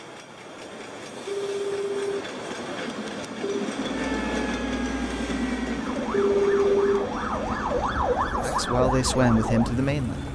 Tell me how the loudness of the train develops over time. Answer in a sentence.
The loudness of the train goes up, then down.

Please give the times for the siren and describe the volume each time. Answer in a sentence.
You can hear the siren from 3.9 to 10.3 s, getting louder.